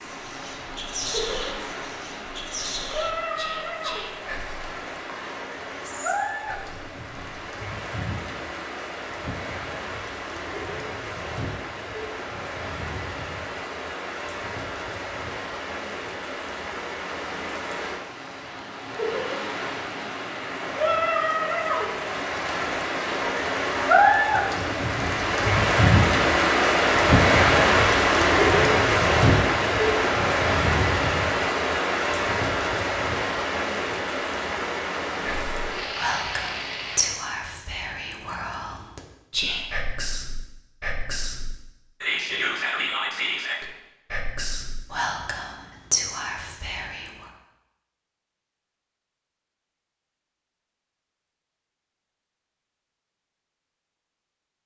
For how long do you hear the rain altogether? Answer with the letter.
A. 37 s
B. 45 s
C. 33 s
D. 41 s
A.